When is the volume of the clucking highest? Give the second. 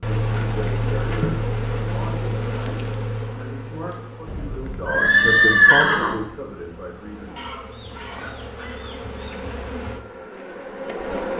8 s.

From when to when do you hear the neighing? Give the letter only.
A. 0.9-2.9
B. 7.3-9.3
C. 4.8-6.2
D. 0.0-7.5
C.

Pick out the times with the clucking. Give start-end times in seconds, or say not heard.
7.3-9.3.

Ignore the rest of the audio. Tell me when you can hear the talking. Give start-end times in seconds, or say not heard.
0.0-7.5.